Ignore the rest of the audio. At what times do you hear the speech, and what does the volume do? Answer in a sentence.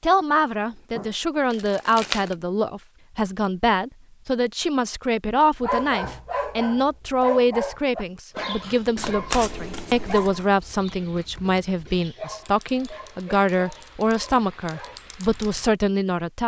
You can hear the speech from 0.0 to 16.4 s, at a steady volume.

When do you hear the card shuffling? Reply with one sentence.
You can hear the card shuffling from 0.9 to 2.4 s and from 8.9 to 10.4 s.